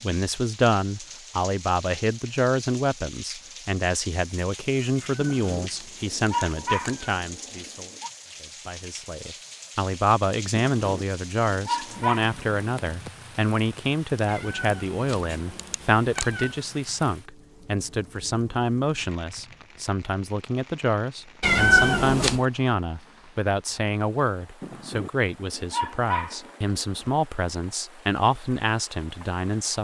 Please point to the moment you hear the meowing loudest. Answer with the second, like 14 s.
22 s.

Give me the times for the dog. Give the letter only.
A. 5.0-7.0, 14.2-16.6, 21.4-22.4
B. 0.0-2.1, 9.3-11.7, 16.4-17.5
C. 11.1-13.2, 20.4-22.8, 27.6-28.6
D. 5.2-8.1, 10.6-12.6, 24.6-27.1
D.